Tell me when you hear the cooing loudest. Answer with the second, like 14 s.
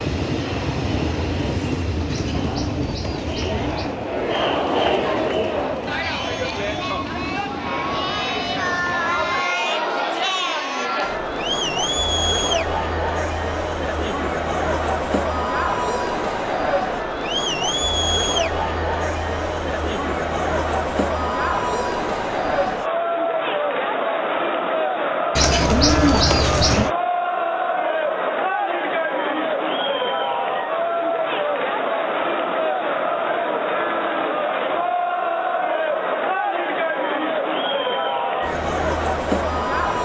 26 s.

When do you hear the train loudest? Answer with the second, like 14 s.
1 s.